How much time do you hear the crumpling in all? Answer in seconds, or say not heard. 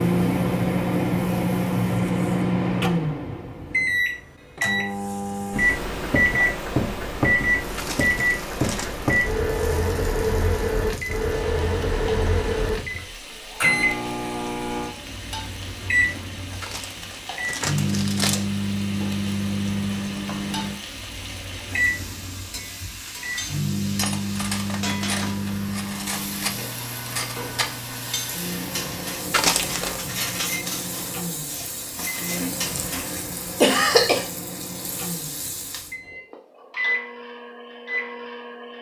4 s.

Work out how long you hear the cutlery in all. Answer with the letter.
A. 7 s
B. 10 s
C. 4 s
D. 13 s
B.